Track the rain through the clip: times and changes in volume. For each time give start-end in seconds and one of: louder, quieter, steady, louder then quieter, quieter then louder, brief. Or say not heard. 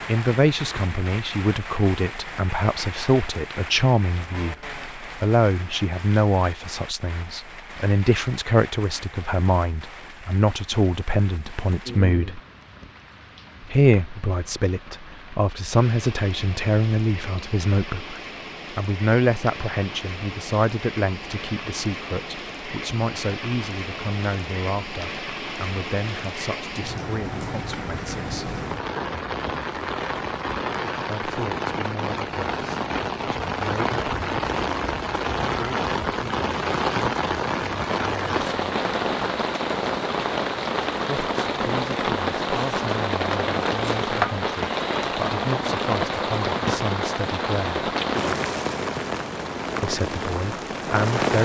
0.0-51.4 louder.